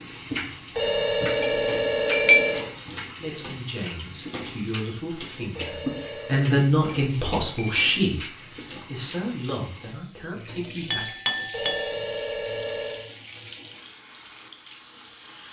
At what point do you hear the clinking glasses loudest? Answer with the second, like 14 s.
2 s.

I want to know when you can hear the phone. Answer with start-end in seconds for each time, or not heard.
0.8-2.6, 5.5-6.5, 11.5-13.1.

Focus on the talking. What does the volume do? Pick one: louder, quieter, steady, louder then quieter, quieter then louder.
louder then quieter.